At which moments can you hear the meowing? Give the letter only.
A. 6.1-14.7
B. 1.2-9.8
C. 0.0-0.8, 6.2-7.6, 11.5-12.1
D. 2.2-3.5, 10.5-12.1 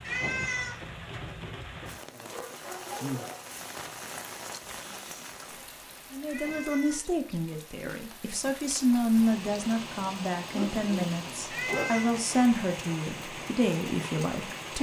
C.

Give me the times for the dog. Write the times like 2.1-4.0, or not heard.
2.2-3.5, 10.5-12.1.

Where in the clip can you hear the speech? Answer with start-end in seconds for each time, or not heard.
6.1-14.7.